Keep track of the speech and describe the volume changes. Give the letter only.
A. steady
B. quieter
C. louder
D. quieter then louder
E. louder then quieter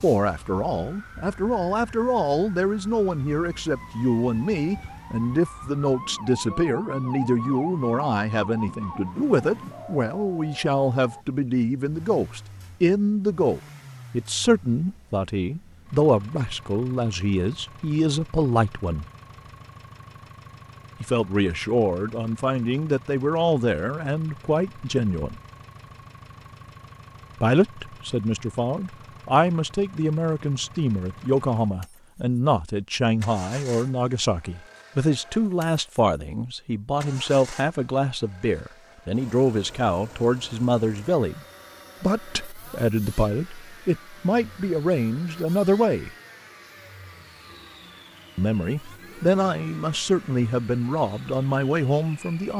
A.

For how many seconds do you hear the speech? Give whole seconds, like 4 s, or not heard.
46 s.